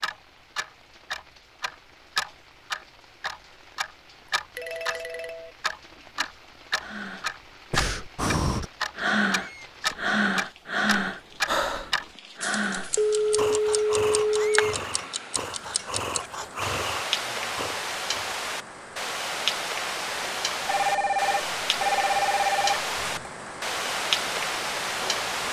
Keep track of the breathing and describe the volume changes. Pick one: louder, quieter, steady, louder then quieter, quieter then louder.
quieter.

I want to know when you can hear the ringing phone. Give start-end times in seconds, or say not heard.
4.5-5.5, 12.9-14.8, 20.6-23.3.